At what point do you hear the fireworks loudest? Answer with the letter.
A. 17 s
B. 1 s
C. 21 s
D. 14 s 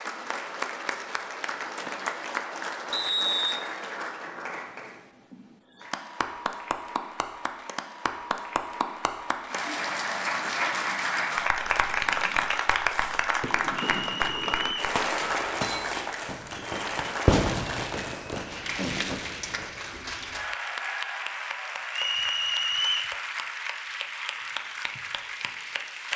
A.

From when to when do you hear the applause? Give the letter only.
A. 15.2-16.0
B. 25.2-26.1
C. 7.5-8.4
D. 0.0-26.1
D.